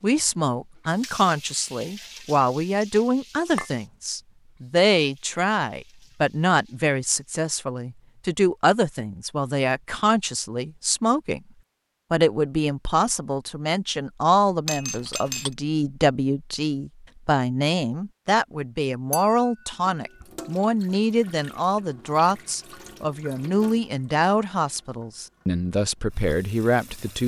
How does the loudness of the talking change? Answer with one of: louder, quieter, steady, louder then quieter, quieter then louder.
steady.